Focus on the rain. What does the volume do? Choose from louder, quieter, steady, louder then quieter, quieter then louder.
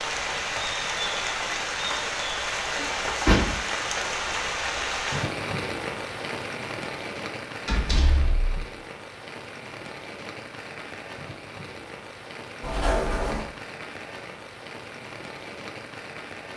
quieter.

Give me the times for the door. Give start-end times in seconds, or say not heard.
2.8-3.6, 7.7-8.4, 12.6-13.5.